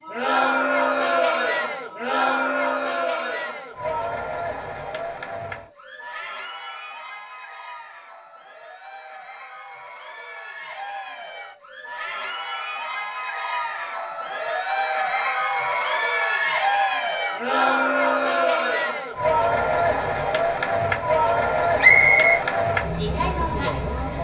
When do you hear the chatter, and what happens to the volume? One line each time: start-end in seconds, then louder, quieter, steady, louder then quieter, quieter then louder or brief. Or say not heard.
0.0-24.2 quieter then louder.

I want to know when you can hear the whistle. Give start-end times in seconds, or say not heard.
21.8-22.4.